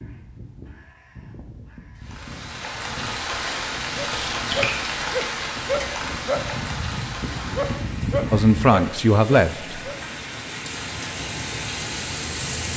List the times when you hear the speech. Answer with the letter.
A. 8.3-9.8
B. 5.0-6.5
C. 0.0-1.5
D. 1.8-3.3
A.